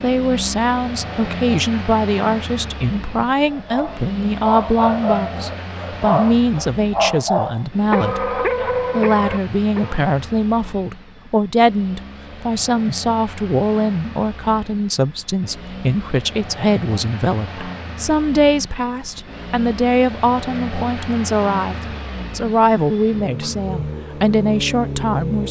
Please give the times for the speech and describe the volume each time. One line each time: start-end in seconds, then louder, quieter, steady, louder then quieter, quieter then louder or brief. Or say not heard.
0.0-25.4 steady.